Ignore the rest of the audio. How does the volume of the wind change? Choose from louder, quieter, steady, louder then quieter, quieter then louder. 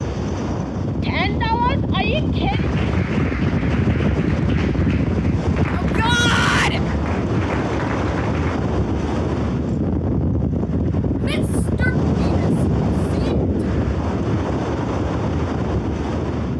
steady.